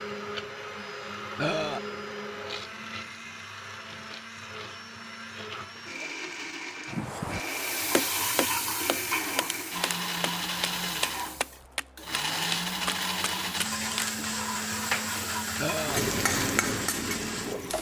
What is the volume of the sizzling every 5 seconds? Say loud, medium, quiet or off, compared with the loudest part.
off, loud, medium, loud.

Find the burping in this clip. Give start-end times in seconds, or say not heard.
1.4-1.8, 15.6-16.0.